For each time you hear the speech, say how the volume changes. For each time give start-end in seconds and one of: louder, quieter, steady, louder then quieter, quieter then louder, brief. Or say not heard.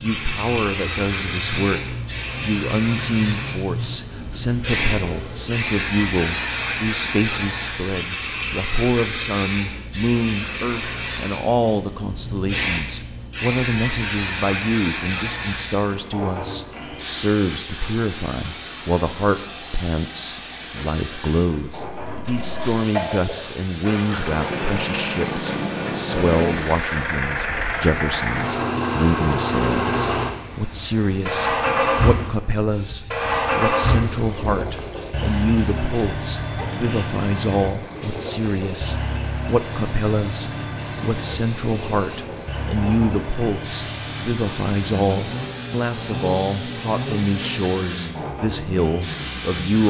0.0-49.8 steady.